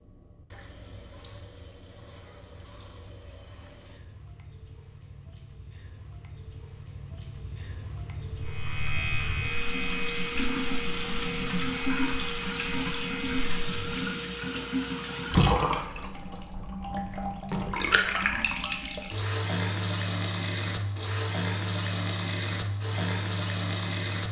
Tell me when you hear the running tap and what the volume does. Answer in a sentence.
The running tap can be heard from 0.0 to 24.2 s, getting louder.